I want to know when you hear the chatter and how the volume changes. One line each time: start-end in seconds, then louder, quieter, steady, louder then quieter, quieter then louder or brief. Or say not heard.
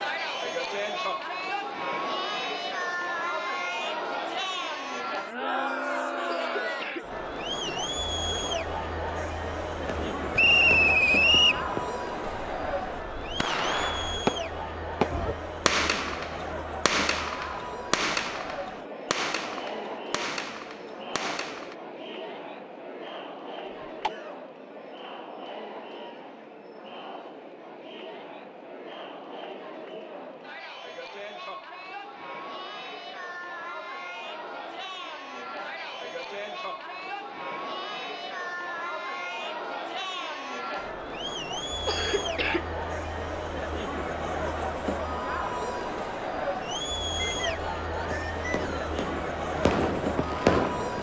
0.0-50.9 quieter then louder.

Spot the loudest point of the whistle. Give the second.
11 s.